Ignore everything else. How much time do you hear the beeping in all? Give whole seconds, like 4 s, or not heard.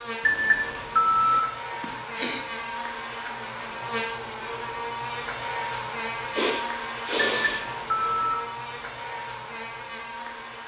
2 s.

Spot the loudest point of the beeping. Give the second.
1 s.